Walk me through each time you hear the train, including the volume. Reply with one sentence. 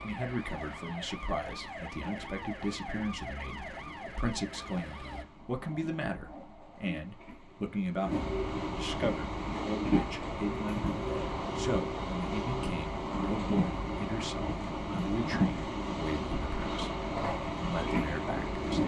You can hear the train from 0.0 to 18.8 s, getting louder.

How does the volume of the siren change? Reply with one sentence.
The volume of the siren stays about the same.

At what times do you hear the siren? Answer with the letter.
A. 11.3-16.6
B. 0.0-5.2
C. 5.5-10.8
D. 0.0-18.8
B.